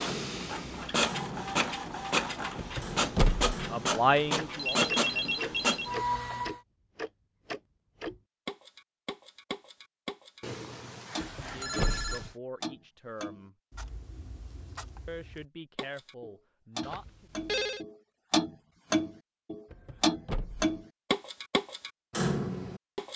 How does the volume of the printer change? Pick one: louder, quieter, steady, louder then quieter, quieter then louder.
steady.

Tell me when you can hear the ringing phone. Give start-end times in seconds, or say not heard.
4.5-6.0, 10.4-12.3, 16.8-17.9.